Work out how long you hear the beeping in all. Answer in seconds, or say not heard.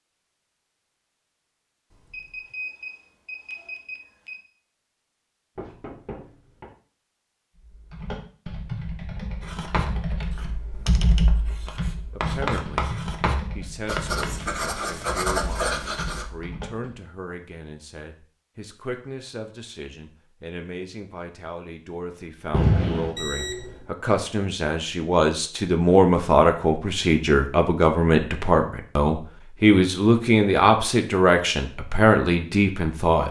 3 s.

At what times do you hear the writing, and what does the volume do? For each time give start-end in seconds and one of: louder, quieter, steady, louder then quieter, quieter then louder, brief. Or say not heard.
9.4-16.2 quieter then louder.